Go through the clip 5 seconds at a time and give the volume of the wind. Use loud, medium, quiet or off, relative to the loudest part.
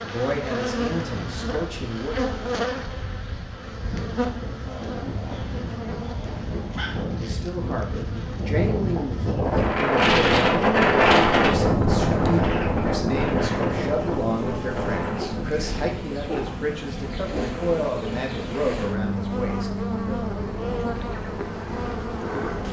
quiet, medium, loud, quiet, quiet.